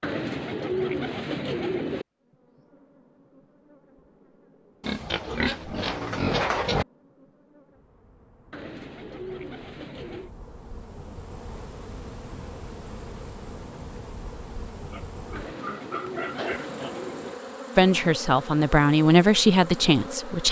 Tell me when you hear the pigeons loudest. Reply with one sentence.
The loudest moment of the pigeons is at 1 second.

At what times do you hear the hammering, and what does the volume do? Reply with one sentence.
The hammering can't be heard in this clip.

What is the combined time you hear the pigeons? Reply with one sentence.
The pigeons can be heard for 6 seconds in total.